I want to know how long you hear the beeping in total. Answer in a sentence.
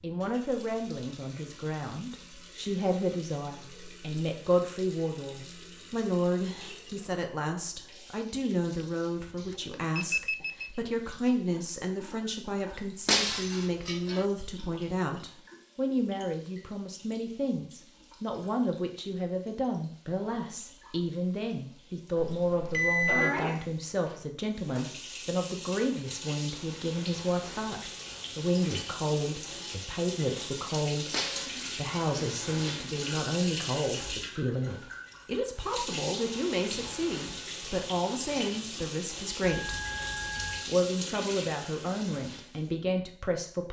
The beeping can be heard for 5 seconds in total.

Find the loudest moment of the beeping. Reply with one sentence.
The loudest moment of the beeping is at 23 seconds.